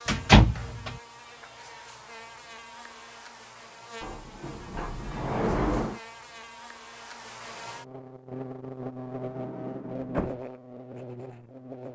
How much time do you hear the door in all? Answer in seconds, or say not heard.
4 s.